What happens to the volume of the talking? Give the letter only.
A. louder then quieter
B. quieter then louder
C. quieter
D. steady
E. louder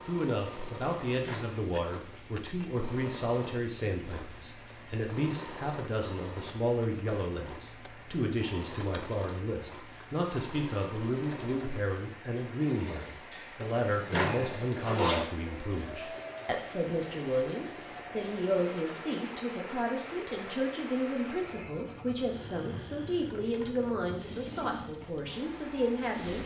D.